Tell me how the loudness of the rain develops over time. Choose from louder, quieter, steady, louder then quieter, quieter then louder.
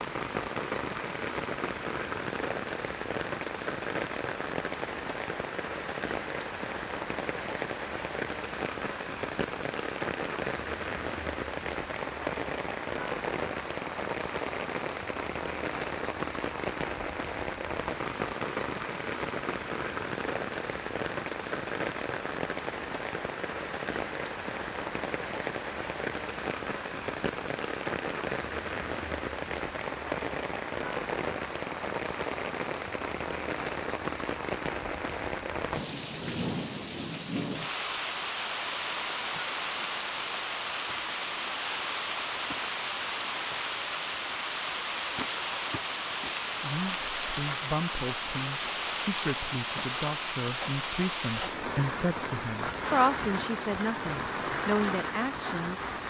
steady.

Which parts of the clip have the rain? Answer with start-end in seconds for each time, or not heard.
0.0-56.0.